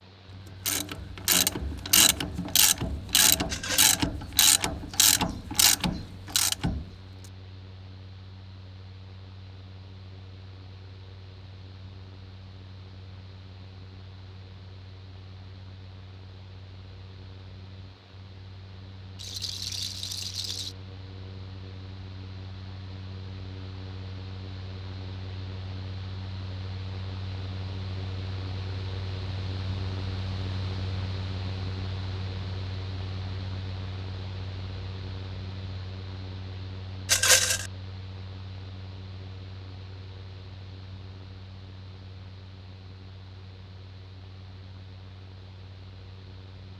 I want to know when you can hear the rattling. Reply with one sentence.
The rattling can be heard from 3.5 to 4.1 s, from 19.2 to 20.8 s and from 37.0 to 37.7 s.